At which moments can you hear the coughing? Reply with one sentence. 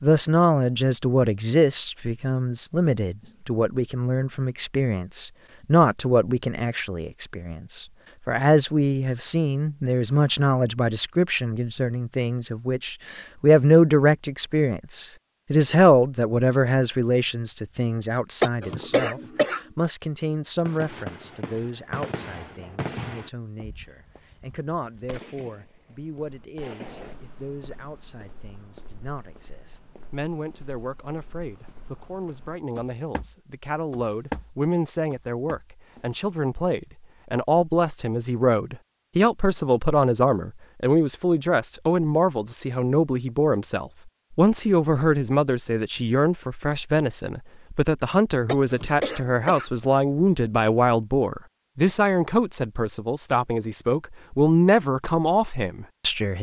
You can hear the coughing from 18.4 to 19.6 s and from 48.5 to 49.7 s.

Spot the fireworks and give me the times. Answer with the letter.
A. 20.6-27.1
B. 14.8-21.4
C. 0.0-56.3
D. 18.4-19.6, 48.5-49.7
A.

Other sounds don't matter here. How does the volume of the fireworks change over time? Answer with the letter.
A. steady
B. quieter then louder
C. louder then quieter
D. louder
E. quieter
B.